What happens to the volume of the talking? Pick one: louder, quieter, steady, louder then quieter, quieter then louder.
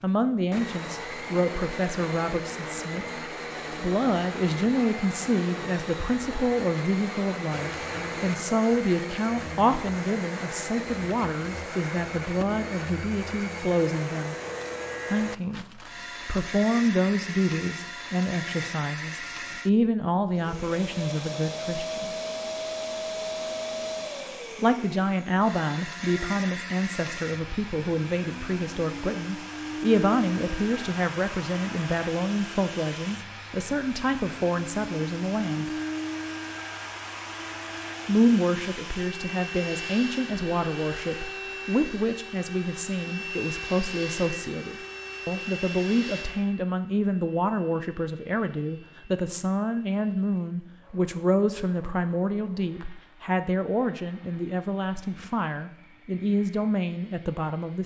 steady.